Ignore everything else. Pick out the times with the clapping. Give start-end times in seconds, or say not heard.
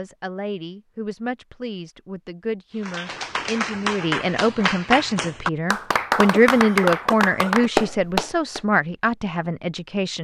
2.8-8.6.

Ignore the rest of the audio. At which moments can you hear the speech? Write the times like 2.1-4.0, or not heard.
0.0-10.1.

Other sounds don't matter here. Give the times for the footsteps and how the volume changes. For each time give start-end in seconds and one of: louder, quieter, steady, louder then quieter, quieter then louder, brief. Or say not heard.
not heard.